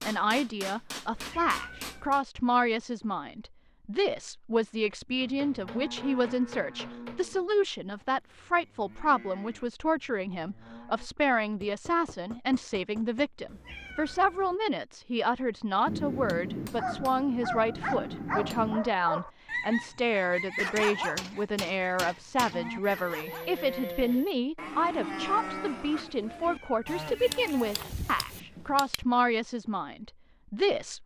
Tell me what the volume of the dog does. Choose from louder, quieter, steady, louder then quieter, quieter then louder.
quieter.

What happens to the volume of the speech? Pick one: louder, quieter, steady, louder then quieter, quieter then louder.
steady.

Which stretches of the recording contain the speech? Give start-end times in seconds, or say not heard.
0.0-31.0.